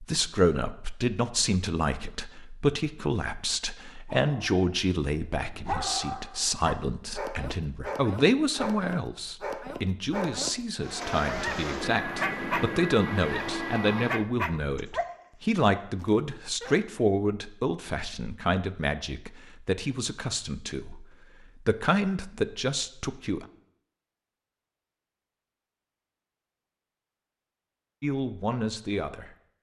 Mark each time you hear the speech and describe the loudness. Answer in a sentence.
The speech can be heard from 0.0 to 23.4 s, at a steady volume; and briefly from 28.0 to 29.3 s.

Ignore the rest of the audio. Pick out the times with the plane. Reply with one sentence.
The plane can be heard from 10.8 to 14.3 s.